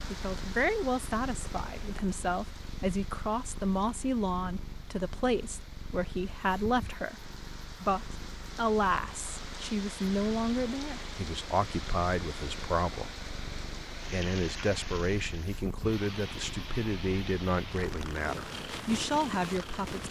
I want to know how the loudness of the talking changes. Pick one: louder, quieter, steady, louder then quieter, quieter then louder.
steady.